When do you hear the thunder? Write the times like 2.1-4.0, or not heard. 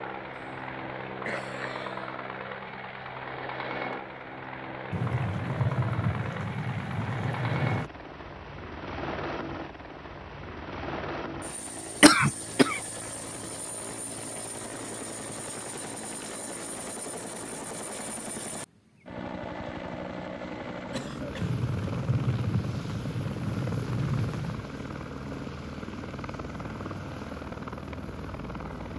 4.9-7.9, 21.4-24.6.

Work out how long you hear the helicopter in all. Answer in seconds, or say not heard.
29 s.